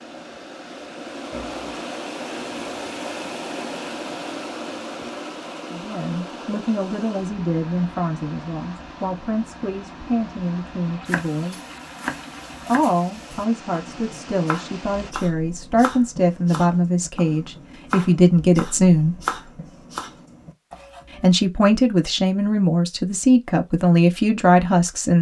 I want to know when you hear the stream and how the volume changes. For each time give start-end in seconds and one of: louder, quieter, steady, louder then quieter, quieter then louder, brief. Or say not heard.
0.0-15.2 quieter.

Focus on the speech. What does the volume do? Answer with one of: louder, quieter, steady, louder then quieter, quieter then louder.
louder.